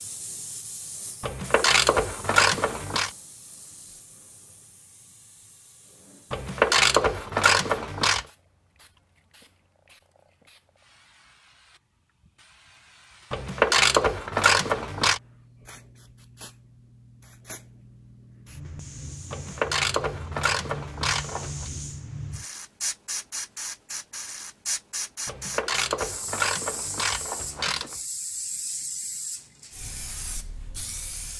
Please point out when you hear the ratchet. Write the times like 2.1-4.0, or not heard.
1.2-3.1, 6.3-8.2, 13.3-15.2, 19.3-21.7, 25.2-28.0.